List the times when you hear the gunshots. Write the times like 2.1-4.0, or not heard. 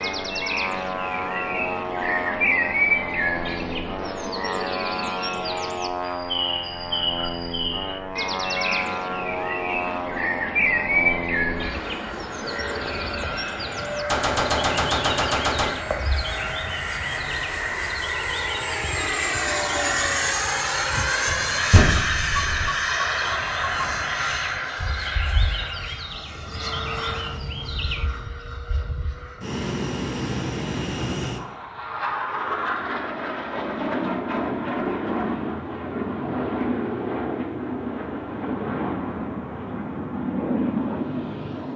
14.1-15.8, 21.2-22.7.